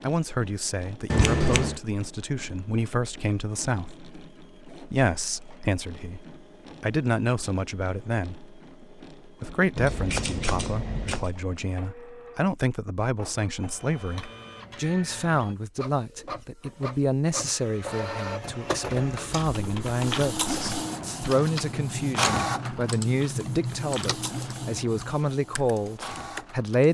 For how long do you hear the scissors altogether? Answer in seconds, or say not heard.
3 s.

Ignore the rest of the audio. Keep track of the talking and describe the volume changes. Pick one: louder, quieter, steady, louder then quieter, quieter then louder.
steady.